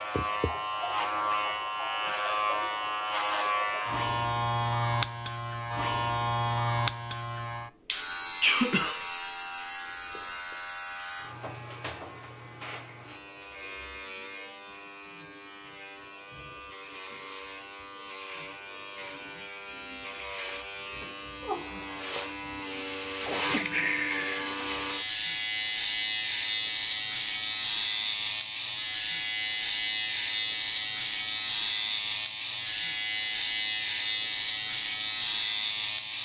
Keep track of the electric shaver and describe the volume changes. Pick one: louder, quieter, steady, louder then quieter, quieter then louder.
quieter then louder.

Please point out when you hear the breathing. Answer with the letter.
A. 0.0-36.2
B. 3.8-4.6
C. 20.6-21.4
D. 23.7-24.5
D.